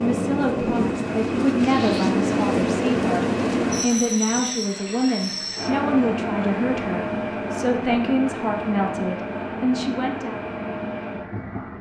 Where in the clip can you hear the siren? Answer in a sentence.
The siren can't be heard in this clip.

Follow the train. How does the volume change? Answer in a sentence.
The volume of the train goes down.